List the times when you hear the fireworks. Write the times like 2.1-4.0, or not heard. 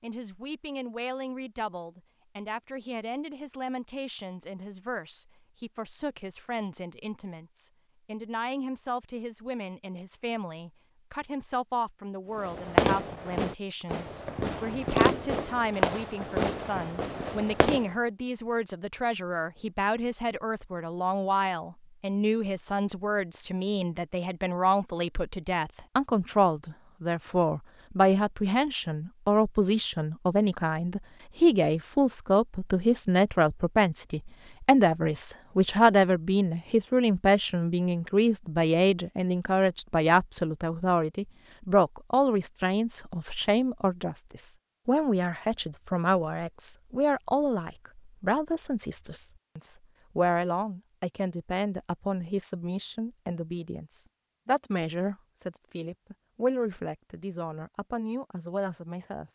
12.3-17.9.